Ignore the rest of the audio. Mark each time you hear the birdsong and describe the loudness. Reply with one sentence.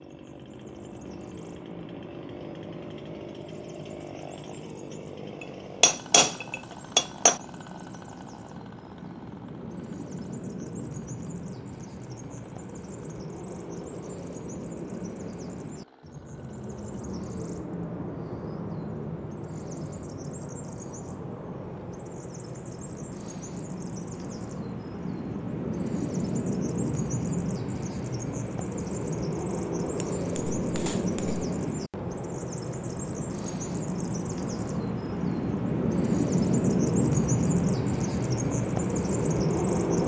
The birdsong can be heard from 0.0 to 40.0 s, getting louder.